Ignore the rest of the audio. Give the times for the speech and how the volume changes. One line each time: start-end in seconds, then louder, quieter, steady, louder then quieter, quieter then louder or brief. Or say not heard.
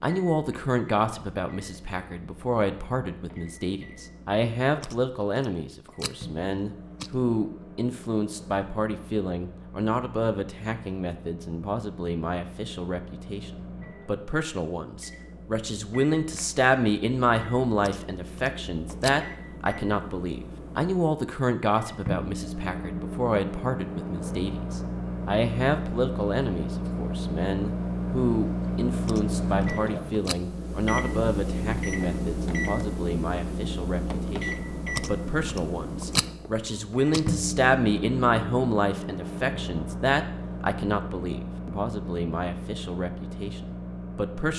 0.0-44.5 steady.